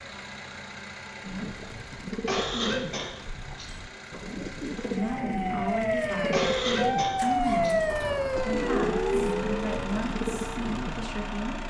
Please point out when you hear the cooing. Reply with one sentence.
You can hear the cooing from 1.2 to 11.1 s.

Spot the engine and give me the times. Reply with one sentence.
The engine can be heard from 0.0 to 11.6 s.